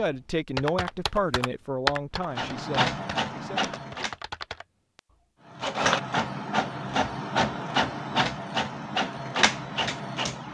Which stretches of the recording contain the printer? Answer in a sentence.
You can hear the printer from 2.2 to 4.2 s and from 5.5 to 10.4 s.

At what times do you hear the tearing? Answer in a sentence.
You can't hear the tearing here.